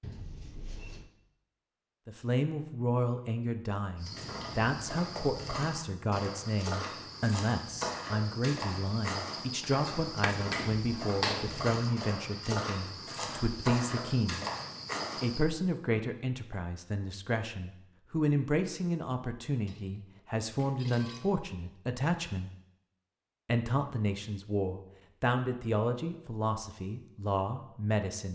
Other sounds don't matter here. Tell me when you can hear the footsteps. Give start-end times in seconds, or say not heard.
4.0-15.4.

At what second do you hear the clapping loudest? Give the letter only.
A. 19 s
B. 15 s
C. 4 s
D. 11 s
D.